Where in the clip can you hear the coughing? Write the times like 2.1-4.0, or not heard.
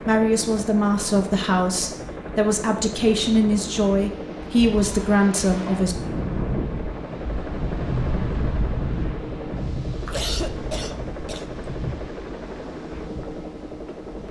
10.1-11.7.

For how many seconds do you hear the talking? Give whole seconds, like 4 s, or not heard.
6 s.